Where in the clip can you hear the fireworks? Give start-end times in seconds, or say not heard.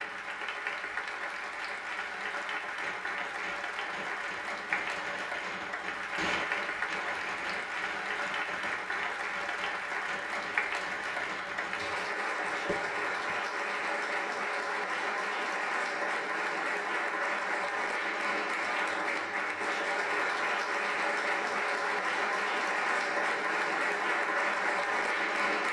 2.6-13.2.